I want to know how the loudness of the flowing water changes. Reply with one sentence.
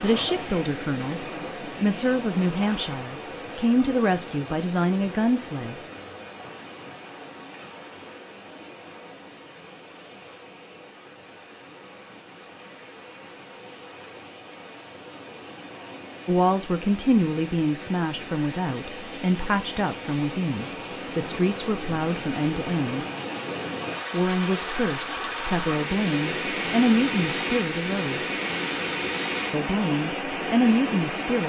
The loudness of the flowing water goes down, then up.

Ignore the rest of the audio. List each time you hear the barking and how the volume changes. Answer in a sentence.
The barking can't be heard in this clip.